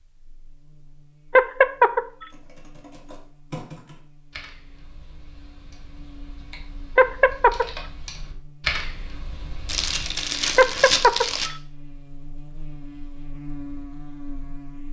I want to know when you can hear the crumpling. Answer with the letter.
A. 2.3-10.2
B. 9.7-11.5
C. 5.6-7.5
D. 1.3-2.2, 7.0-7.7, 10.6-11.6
B.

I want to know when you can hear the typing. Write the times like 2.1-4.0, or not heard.
2.3-10.2.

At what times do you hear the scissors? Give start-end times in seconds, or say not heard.
not heard.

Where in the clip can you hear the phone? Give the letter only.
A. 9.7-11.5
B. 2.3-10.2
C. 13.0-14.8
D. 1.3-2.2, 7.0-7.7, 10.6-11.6
D.